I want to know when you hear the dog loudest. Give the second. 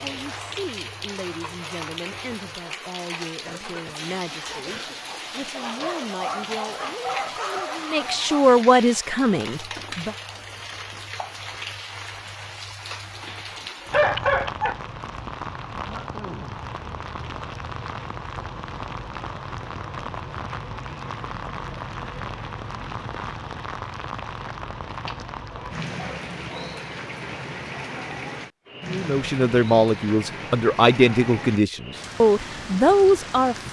14 s.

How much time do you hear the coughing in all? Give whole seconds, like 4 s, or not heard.
2 s.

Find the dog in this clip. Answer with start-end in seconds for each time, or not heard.
5.5-8.5, 13.2-14.8, 25.1-26.8.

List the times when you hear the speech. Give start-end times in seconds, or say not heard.
0.0-10.2, 28.9-33.5.